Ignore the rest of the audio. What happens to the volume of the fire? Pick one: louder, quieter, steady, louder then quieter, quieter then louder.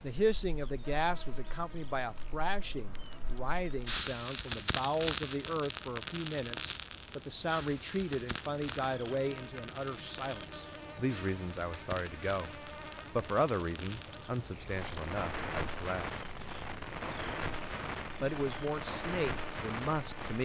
quieter then louder.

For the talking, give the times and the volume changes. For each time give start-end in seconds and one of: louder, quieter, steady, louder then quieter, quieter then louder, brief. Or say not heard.
0.0-16.1 steady
18.2-20.4 brief.